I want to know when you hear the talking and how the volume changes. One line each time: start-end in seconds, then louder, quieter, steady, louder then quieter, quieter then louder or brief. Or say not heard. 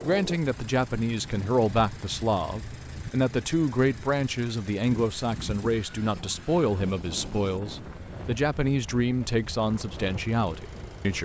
0.0-11.1 steady.